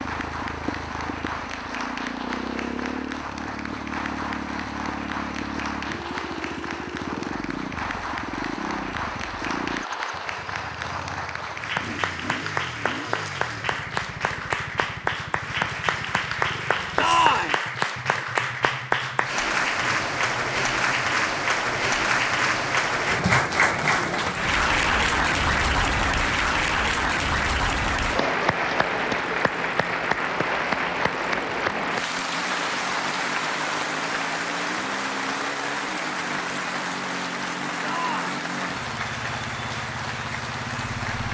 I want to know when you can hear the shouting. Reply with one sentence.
The shouting can be heard from 16.9 to 17.6 s and from 37.8 to 38.3 s.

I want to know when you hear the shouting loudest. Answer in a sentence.
The volume of the shouting peaks at 17 seconds.